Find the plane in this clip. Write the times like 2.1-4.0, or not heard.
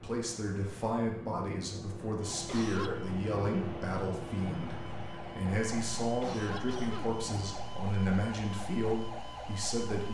0.0-7.6.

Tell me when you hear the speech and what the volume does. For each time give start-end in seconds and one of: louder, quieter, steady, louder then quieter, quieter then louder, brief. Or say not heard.
0.0-10.0 steady.